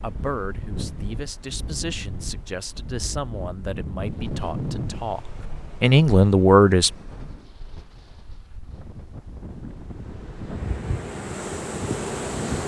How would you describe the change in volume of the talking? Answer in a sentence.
The loudness of the talking goes up.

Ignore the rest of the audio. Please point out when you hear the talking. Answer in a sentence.
The talking can be heard from 0.0 to 6.9 s.